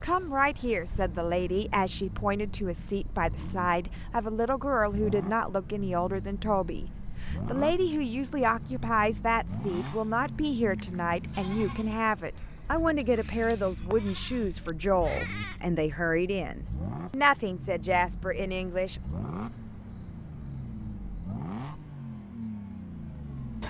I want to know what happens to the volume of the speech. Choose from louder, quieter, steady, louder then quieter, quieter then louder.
steady.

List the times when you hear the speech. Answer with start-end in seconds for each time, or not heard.
0.0-19.0.